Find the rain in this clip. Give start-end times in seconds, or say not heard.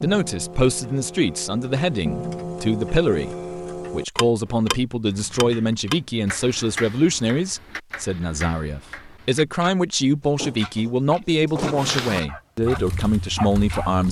not heard.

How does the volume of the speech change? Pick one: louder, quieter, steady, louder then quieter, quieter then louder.
steady.